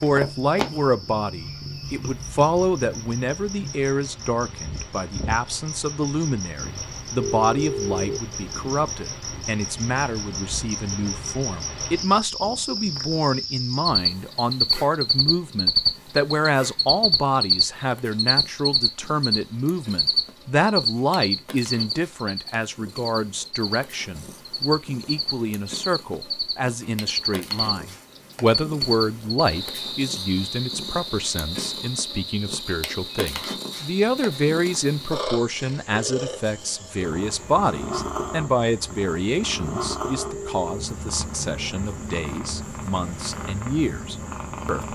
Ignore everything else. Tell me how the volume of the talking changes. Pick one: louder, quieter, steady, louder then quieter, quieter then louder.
steady.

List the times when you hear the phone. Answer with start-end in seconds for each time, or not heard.
7.2-8.2, 40.2-40.9.